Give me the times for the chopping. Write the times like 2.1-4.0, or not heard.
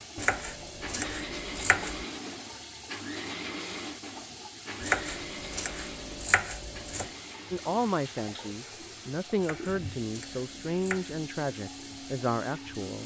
0.1-2.0, 4.8-7.1, 9.3-11.2.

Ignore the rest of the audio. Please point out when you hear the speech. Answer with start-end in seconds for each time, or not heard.
7.5-13.0.